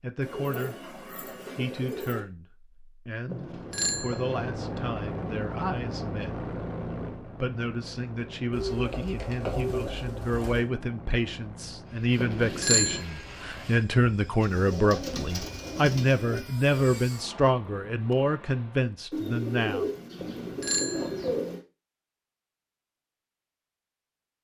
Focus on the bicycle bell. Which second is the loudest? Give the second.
13 s.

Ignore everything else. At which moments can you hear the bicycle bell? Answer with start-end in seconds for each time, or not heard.
3.3-4.5, 12.2-13.0, 20.1-21.4.